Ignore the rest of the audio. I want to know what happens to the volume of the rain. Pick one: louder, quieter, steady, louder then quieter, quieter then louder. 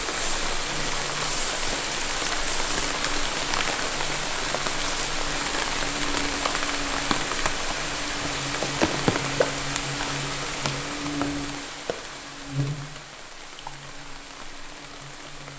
quieter.